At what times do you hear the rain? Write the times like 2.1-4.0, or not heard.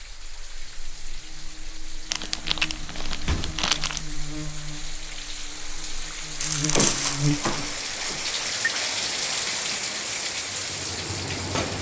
0.0-11.7.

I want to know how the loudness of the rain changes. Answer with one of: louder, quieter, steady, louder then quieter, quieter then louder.
louder.